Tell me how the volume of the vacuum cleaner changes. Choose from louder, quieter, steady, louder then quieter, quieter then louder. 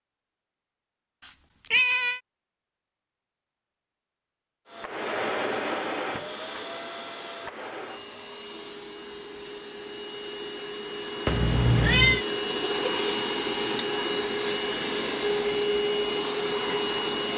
quieter then louder.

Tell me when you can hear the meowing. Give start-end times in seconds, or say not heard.
1.2-2.2, 11.2-12.2.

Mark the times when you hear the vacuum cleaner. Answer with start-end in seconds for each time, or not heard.
4.7-17.3.